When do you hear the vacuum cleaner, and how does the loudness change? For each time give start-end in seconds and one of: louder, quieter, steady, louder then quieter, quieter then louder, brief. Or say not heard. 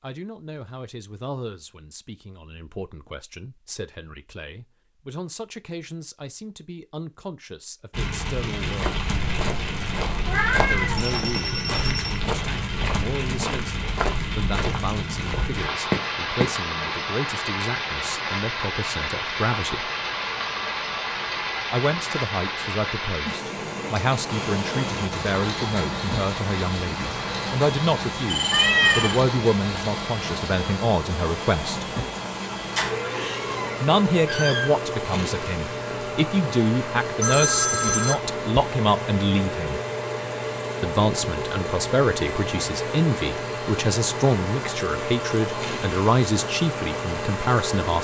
24.2-47.9 steady.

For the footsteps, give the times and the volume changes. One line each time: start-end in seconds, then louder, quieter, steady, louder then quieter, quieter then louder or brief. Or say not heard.
8.6-16.6 louder.